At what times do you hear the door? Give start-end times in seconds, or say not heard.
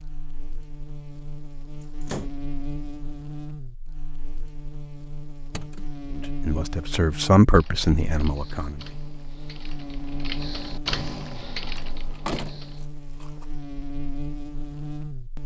1.7-2.3, 5.5-6.3, 11.8-13.4.